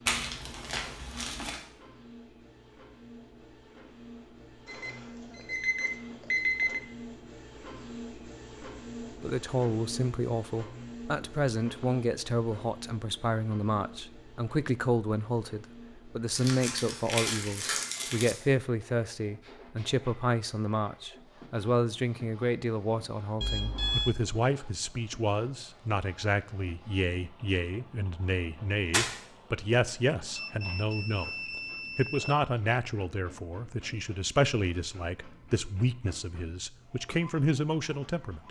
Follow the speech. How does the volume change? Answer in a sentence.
The volume of the speech stays about the same.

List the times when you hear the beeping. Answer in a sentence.
The beeping can be heard from 4.7 to 6.8 s, from 23.4 to 24.1 s and from 30.4 to 32.4 s.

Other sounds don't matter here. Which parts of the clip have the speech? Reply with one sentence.
You can hear the speech from 9.2 to 31.3 s and from 31.9 to 38.4 s.